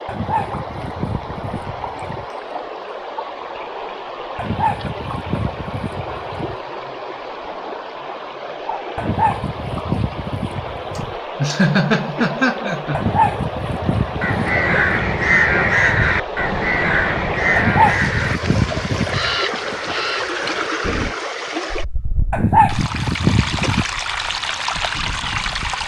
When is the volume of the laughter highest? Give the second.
12 s.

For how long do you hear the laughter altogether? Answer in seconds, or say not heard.
2 s.